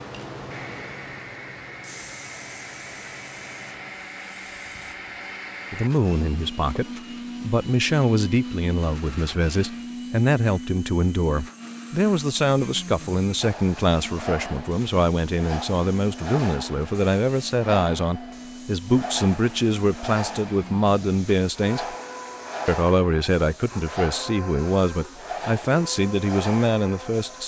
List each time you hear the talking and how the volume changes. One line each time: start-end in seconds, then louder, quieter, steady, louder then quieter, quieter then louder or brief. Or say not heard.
5.7-21.9 steady
22.6-27.4 steady.